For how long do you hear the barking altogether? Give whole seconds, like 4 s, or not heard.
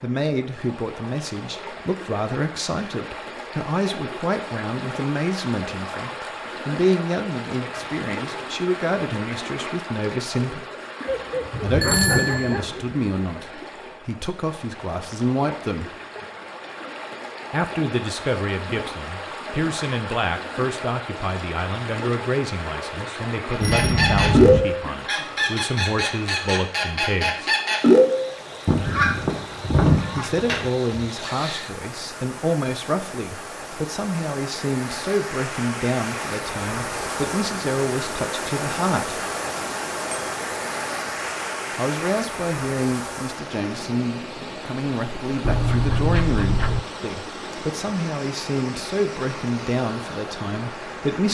3 s.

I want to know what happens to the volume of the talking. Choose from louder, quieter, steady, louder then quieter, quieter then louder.
steady.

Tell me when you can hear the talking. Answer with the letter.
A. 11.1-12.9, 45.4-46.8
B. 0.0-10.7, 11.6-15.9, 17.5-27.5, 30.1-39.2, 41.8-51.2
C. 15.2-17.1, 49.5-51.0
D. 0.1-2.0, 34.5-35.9
B.